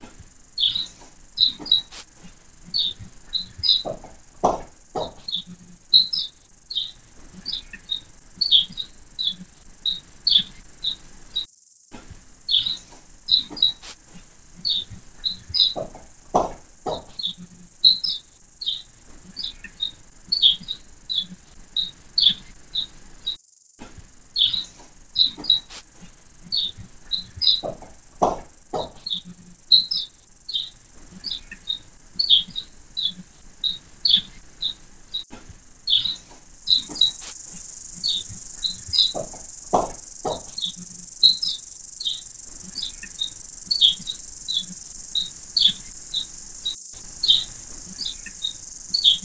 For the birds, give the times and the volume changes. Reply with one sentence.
The birds can be heard from 0.0 to 49.1 s, at a steady volume.